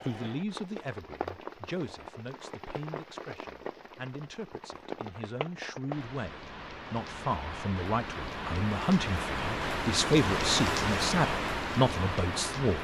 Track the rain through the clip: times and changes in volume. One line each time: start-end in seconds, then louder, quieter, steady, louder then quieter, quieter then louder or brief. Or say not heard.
0.0-12.7 louder.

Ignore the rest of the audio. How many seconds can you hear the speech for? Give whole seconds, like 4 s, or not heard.
13 s.